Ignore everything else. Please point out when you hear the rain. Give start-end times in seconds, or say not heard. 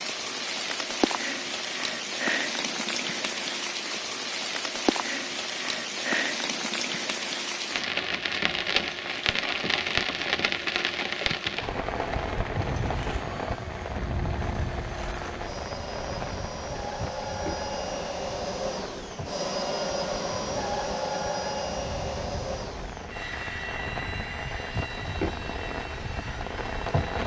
0.0-27.2.